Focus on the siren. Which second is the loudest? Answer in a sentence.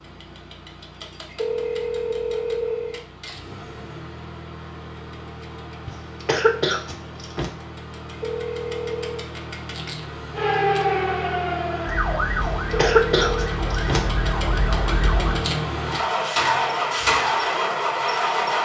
The volume of the siren peaks at 11 seconds.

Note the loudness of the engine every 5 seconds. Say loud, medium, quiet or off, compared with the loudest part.
quiet, quiet, medium, loud.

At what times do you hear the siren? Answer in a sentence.
The siren can be heard from 10.3 to 15.4 s.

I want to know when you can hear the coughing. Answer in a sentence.
The coughing can be heard from 5.8 to 7.5 s and from 12.3 to 14.0 s.